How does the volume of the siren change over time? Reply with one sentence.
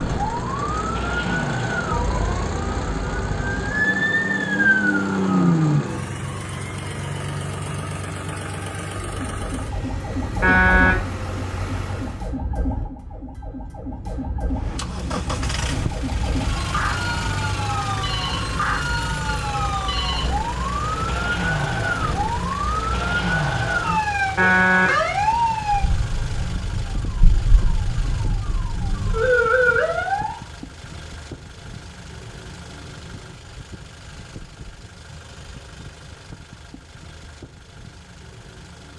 The volume of the siren goes down, then up.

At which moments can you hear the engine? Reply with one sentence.
You can hear the engine from 0.0 to 12.3 s and from 14.5 to 38.9 s.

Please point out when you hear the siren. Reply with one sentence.
You can hear the siren from 0.0 to 30.4 s.